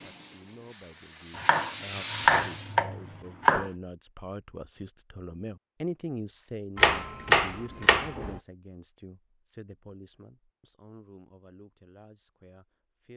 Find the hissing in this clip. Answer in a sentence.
You can hear the hissing from 0.0 to 2.8 s.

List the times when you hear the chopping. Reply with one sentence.
You can hear the chopping from 1.4 to 3.7 s and from 6.8 to 8.4 s.